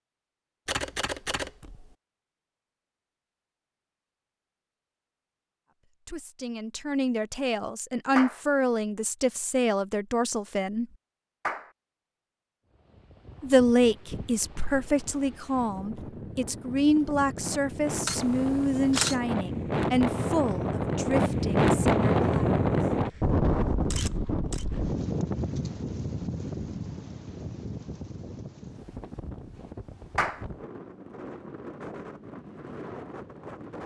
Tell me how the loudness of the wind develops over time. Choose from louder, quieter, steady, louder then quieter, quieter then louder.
louder then quieter.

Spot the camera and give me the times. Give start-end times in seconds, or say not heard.
0.7-1.9, 18.1-19.1, 23.9-24.6.